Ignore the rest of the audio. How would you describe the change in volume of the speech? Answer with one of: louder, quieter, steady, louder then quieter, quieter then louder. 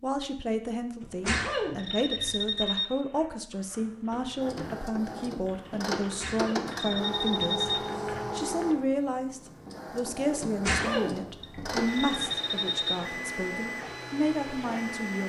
steady.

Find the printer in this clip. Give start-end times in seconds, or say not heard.
4.4-15.2.